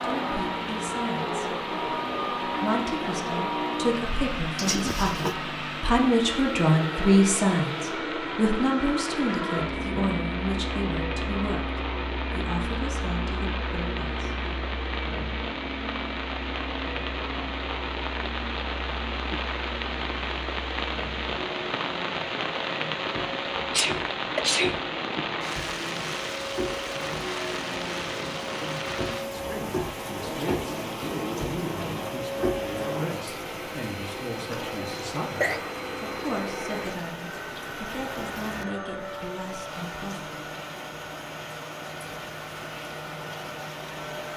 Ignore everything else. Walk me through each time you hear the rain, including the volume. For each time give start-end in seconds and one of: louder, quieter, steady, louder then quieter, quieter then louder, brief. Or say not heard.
0.0-44.3 louder then quieter.